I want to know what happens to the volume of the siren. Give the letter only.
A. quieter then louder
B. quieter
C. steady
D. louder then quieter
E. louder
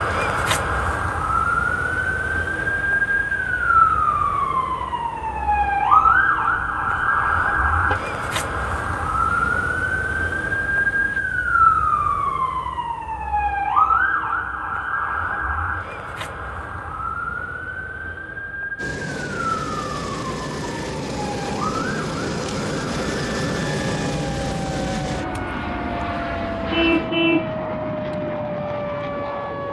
B.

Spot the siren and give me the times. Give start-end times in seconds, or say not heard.
0.0-29.6.